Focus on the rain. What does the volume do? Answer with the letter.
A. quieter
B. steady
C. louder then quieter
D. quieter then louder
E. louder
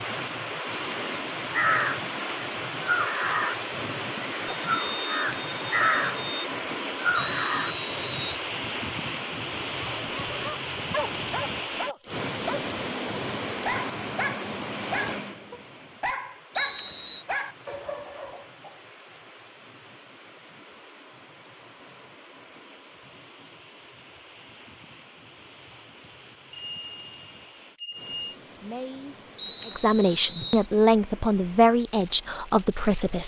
A.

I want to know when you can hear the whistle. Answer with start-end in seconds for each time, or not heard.
7.3-8.4, 16.6-17.2, 29.4-30.6.